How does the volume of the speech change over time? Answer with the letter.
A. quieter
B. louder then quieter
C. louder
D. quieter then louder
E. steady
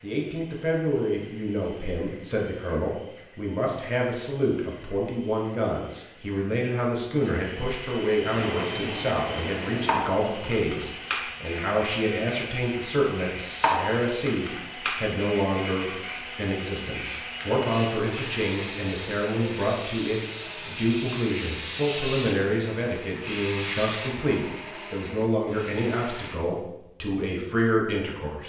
E.